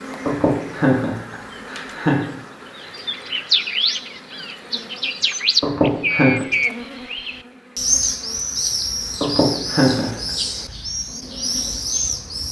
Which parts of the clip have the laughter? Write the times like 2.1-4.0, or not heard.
0.2-2.3, 5.6-6.5, 9.2-10.3.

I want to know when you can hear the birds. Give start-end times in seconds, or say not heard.
2.8-12.4.